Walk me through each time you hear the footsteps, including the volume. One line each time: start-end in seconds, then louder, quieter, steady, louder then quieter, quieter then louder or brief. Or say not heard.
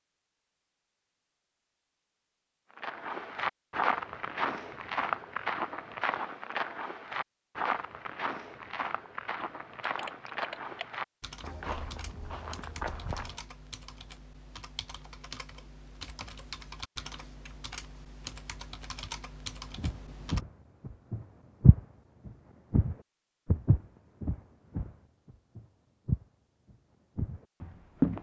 2.8-13.4 quieter
19.8-28.1 louder then quieter.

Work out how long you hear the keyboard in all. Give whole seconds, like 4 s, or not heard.
11 s.